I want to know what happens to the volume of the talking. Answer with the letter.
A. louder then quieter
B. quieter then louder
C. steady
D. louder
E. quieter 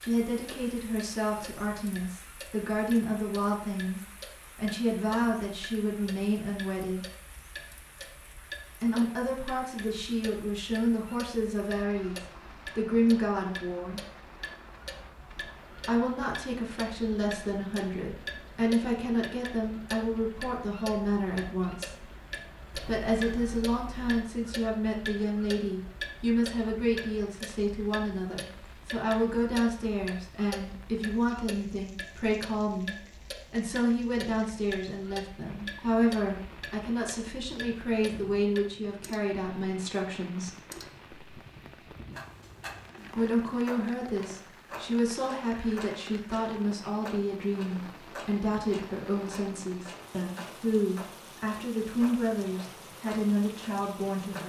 C.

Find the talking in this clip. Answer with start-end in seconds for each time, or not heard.
0.0-7.0, 8.8-14.0, 15.8-22.1, 22.9-40.5, 43.1-54.4.